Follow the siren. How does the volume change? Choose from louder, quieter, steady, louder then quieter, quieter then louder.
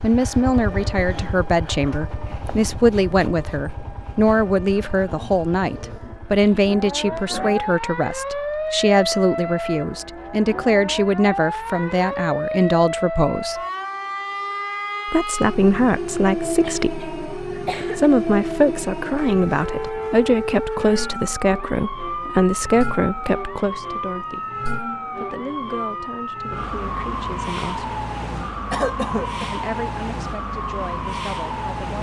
louder.